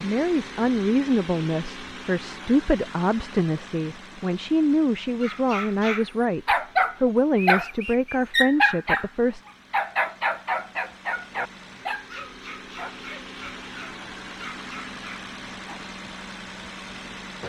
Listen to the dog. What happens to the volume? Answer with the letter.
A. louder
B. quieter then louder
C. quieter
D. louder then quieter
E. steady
C.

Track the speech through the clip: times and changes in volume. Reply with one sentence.
The speech can be heard from 0.0 to 9.4 s, at a steady volume.